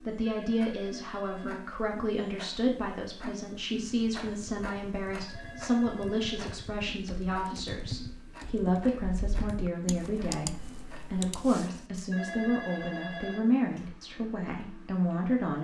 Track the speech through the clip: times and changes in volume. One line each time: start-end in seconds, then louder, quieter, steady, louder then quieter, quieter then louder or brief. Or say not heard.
0.0-15.5 steady.